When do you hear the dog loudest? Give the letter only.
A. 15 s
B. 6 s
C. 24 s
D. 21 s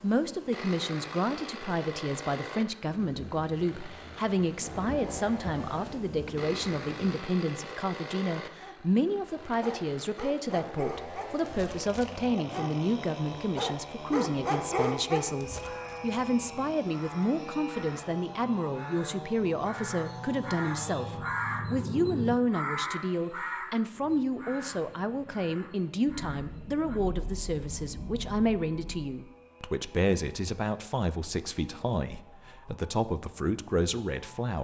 A.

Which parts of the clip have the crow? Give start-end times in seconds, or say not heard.
15.6-27.0.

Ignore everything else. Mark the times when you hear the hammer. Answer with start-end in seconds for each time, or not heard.
not heard.